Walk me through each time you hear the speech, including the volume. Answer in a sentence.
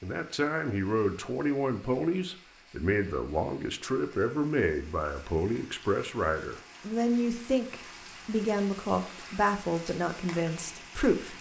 You can hear the speech from 0.0 to 11.3 s, at a steady volume.